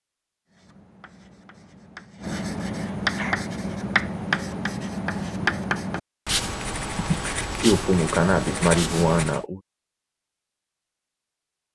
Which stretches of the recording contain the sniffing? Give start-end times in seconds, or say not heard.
2.6-3.4, 7.0-9.6.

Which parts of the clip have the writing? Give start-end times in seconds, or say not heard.
0.5-9.4.